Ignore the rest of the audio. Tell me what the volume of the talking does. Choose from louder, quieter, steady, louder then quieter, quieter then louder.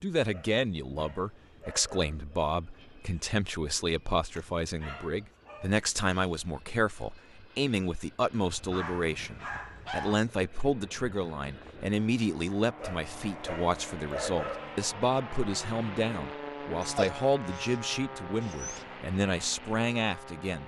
steady.